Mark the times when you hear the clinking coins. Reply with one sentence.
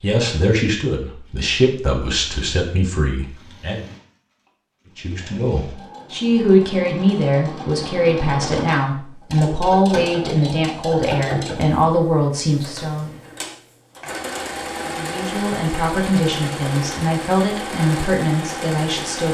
You can't hear the clinking coins here.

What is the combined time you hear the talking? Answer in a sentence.
The talking can be heard for 16 seconds in total.